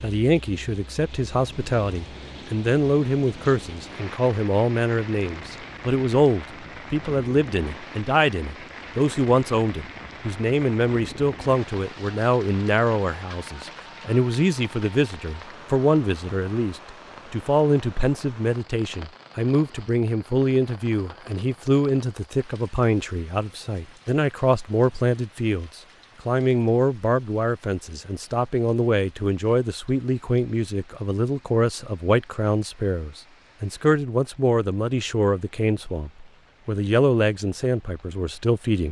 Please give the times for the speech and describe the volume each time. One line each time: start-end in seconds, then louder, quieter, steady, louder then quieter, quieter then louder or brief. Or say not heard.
0.0-38.8 steady.